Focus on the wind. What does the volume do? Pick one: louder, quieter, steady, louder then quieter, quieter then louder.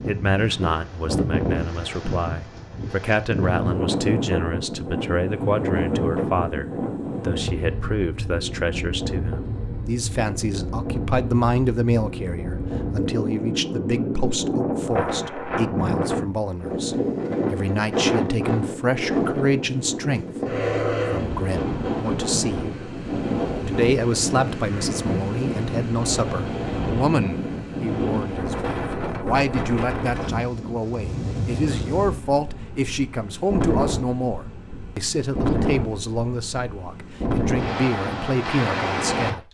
steady.